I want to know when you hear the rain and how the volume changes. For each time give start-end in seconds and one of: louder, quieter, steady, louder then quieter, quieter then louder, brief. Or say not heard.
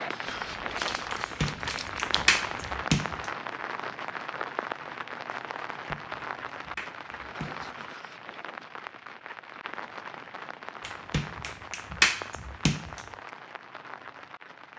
0.0-14.7 quieter.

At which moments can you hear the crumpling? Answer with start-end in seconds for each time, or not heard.
0.2-2.8.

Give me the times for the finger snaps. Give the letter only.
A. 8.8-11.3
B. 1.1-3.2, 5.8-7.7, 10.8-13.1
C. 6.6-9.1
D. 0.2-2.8
B.